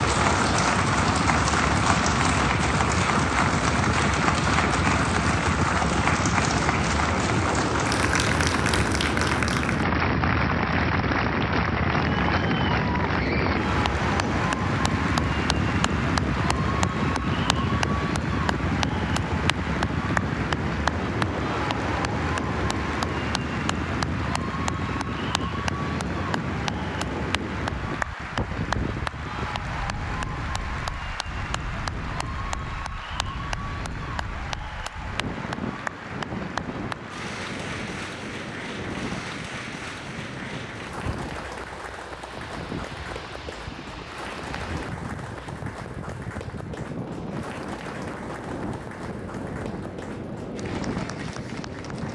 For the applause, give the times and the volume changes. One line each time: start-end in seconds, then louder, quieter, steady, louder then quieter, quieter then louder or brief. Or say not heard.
0.0-52.0 quieter.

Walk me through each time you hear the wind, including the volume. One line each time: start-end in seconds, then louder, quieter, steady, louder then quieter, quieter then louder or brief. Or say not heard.
0.0-52.0 quieter.